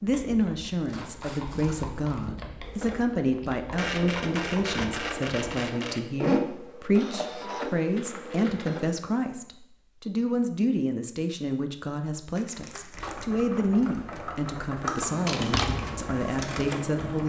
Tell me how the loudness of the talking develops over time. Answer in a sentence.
The loudness of the talking stays about the same.